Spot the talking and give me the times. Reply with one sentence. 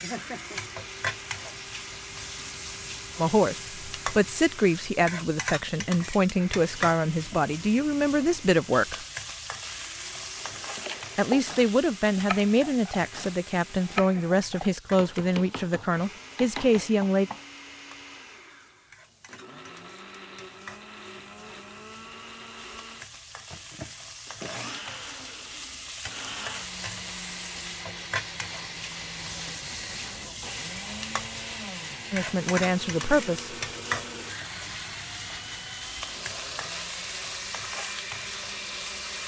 The talking can be heard from 3.1 to 9.1 s, from 11.2 to 17.3 s and from 32.1 to 33.5 s.